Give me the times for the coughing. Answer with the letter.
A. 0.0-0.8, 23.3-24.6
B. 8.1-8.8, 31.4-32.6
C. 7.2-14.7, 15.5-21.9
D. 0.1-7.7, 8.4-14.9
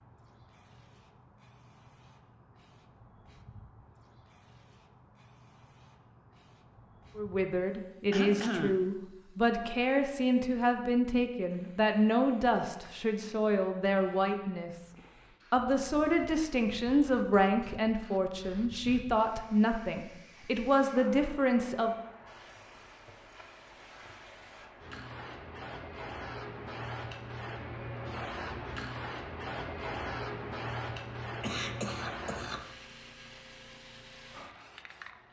B.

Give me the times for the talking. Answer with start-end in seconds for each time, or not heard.
7.2-14.7, 15.5-21.9.